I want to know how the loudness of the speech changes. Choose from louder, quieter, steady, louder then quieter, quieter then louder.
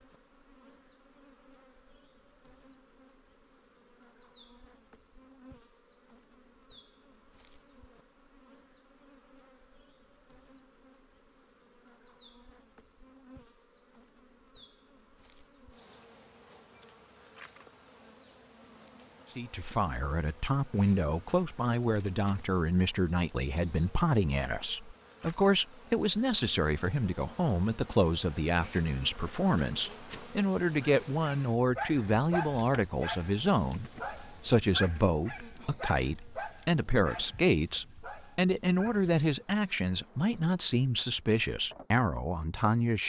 steady.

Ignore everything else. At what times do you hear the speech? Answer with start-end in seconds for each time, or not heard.
19.4-43.0.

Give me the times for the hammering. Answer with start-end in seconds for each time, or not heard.
not heard.